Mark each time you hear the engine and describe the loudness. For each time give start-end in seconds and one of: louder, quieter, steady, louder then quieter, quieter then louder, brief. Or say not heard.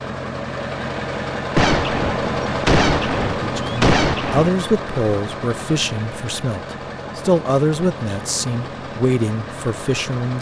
0.0-10.3 quieter.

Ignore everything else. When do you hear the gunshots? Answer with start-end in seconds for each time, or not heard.
1.6-4.5.